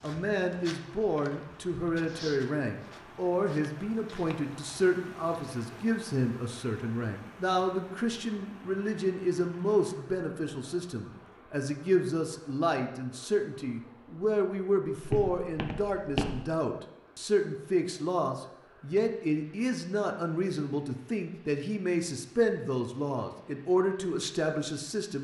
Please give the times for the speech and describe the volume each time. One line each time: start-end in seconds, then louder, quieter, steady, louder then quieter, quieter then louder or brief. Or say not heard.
0.0-25.1 steady.